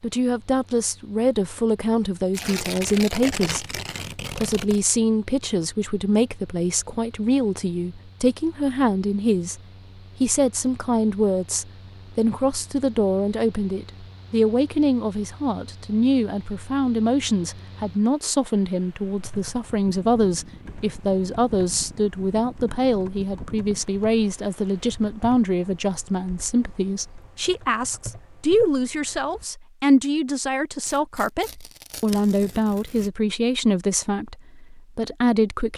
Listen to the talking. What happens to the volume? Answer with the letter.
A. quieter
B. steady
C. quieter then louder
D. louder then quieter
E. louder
B.